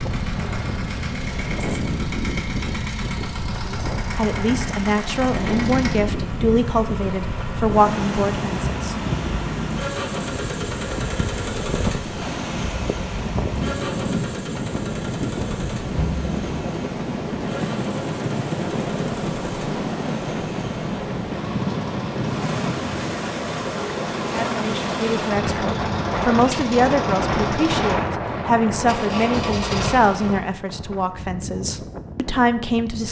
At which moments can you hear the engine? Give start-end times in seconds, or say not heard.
0.0-30.6.